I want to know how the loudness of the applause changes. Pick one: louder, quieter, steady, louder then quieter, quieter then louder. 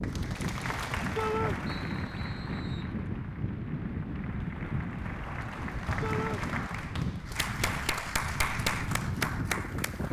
quieter then louder.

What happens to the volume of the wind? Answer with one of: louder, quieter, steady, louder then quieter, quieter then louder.
steady.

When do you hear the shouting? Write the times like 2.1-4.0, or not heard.
1.1-1.6, 6.0-6.5.